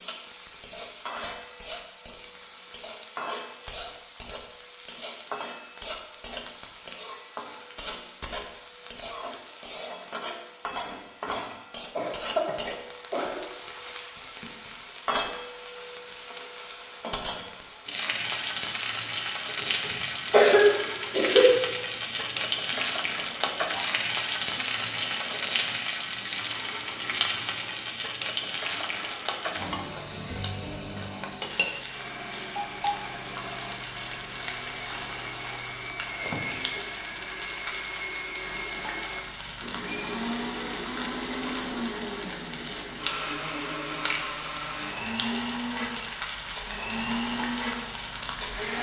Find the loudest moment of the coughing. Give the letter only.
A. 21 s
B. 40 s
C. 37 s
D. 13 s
A.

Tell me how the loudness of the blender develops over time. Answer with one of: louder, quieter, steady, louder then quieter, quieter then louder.
louder.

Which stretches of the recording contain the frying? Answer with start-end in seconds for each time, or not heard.
0.0-48.7.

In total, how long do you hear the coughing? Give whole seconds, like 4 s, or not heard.
4 s.